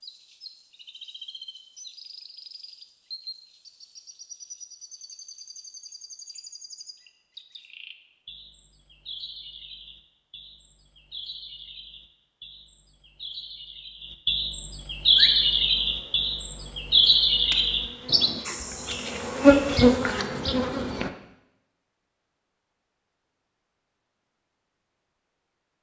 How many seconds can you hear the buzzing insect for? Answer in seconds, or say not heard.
6 s.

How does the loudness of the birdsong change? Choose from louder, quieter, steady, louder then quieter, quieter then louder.
louder.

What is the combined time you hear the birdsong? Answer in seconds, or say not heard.
20 s.